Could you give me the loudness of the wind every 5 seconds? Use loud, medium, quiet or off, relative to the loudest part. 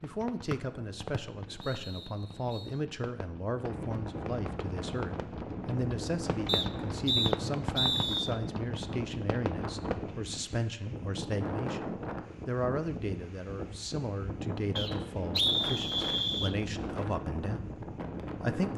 medium, loud, loud, loud.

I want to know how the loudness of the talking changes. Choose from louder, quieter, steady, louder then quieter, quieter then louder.
steady.